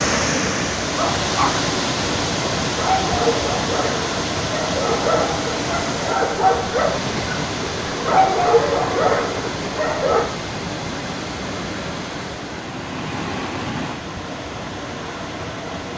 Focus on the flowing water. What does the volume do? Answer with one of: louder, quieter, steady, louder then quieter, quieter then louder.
quieter.